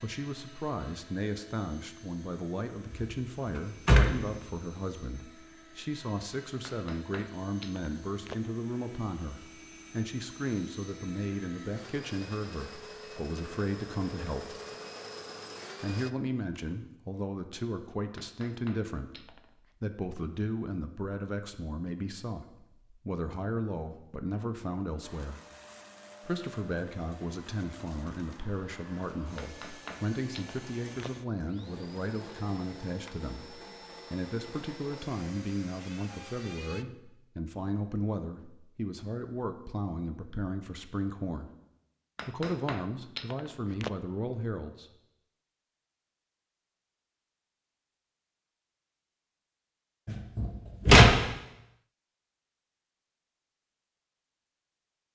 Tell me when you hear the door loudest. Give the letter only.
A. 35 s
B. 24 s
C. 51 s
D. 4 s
C.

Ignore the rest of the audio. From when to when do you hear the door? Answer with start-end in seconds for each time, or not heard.
2.9-4.5, 50.0-51.1.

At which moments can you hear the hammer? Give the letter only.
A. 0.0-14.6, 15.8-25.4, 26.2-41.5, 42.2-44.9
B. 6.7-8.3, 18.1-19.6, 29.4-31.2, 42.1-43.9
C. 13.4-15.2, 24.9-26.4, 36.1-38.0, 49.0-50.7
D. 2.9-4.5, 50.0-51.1
B.